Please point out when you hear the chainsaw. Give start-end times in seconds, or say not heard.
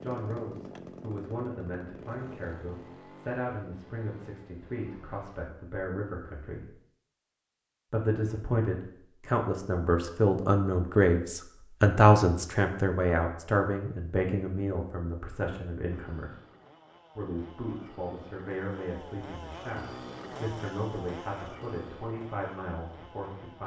0.0-5.4, 15.8-23.6.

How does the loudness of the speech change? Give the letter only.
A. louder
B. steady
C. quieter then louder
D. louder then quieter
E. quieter
D.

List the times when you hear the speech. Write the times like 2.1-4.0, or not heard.
0.0-6.8, 7.9-16.4, 17.1-23.6.